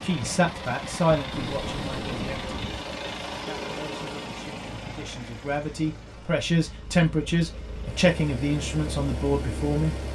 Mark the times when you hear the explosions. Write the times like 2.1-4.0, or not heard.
1.3-2.6.